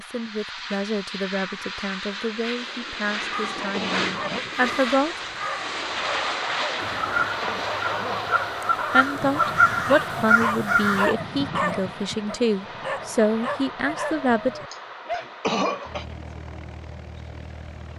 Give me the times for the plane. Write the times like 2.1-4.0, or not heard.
0.0-17.9.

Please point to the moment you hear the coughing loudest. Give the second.
16 s.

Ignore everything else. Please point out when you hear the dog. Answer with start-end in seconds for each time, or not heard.
3.5-15.3.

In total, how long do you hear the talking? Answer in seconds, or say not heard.
11 s.